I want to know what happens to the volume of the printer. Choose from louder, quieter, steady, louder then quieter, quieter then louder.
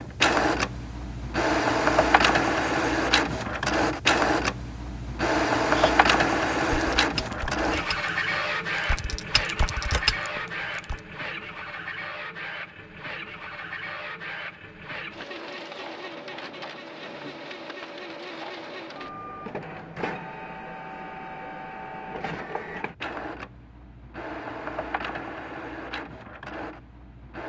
quieter.